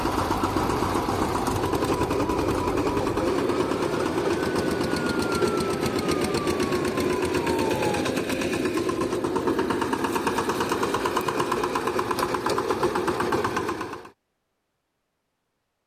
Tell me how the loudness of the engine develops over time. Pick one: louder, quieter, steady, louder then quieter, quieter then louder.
steady.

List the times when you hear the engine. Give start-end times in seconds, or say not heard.
0.0-14.1.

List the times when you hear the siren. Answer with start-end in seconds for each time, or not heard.
0.0-8.0.